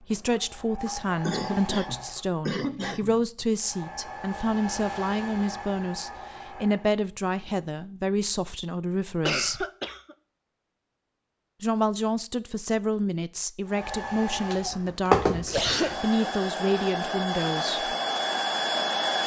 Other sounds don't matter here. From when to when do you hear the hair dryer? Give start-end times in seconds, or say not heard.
0.0-2.2, 3.5-6.9, 13.7-19.2.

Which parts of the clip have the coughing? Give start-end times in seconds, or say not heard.
1.2-3.2, 9.2-10.2, 15.4-15.9.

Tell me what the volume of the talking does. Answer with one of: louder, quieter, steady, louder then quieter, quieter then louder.
steady.